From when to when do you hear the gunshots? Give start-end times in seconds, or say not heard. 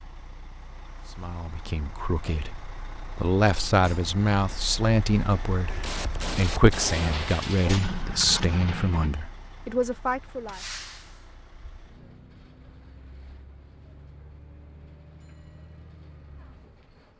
5.7-9.2.